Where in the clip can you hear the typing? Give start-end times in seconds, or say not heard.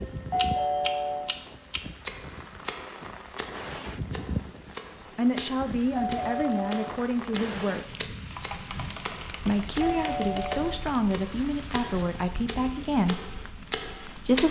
8.3-10.6.